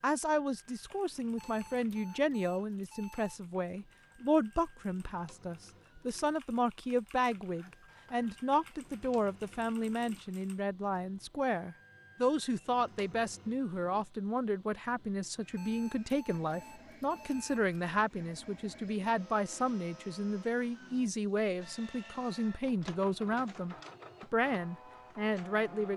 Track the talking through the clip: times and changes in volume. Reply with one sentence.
You can hear the talking from 0.0 to 25.9 s, at a steady volume.